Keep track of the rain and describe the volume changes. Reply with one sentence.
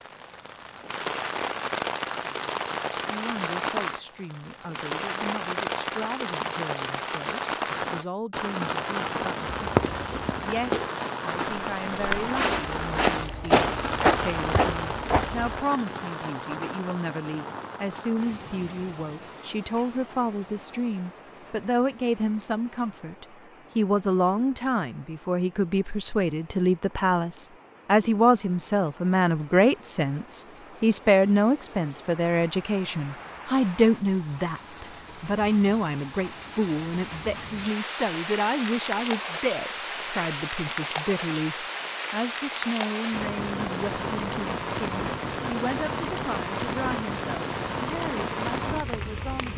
The loudness of the rain goes down, then up.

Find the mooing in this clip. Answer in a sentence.
You can't hear the mooing here.